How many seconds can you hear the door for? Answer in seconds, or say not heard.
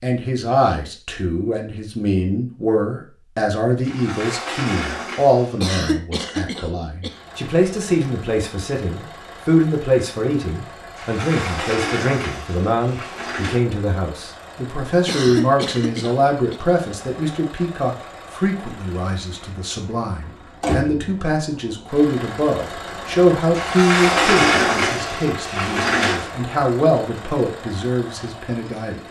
7 s.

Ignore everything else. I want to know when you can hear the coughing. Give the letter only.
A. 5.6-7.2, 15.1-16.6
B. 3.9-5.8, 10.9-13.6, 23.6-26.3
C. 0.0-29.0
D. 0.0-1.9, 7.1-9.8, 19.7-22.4
A.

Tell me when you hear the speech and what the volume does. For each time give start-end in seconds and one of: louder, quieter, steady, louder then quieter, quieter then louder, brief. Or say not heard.
0.0-29.0 steady.